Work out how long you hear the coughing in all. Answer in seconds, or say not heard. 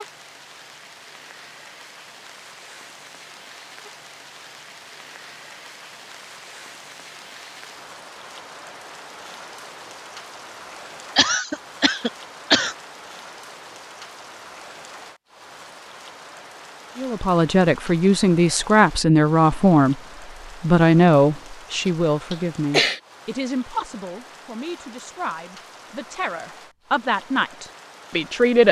3 s.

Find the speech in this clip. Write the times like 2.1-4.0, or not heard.
16.9-19.9, 20.6-28.6.